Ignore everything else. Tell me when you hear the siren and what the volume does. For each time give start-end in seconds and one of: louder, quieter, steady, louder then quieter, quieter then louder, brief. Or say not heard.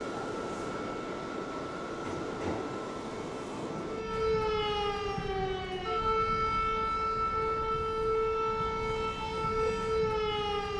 0.0-10.7 louder.